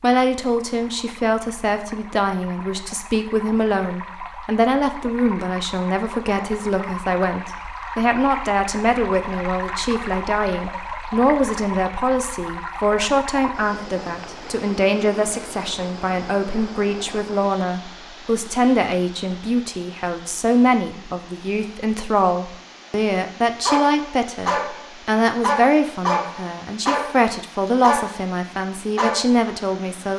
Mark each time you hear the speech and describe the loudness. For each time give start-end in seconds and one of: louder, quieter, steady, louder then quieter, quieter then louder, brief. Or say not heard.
0.0-30.1 steady.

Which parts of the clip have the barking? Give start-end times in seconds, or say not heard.
23.6-28.2, 28.9-29.4.